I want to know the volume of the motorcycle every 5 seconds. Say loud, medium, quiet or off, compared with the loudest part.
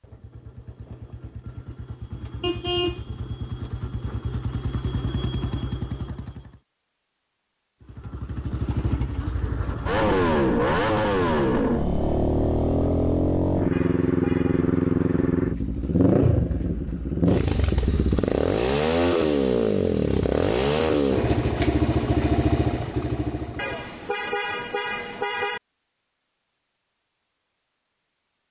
quiet, medium, loud, loud, loud, off.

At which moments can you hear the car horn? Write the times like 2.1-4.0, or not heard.
2.4-3.0, 13.7-14.7, 23.6-25.6.